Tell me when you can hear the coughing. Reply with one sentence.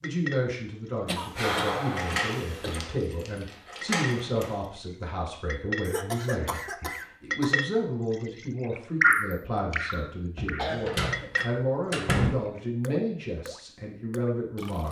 You can hear the coughing from 1.1 to 2.8 s, from 5.8 to 7.5 s and from 10.3 to 11.3 s.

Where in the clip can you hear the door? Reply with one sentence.
You can hear the door from 1.9 to 4.5 s and from 10.3 to 12.3 s.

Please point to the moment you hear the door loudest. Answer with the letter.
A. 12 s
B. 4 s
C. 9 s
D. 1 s
A.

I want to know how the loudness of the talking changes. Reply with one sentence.
The loudness of the talking stays about the same.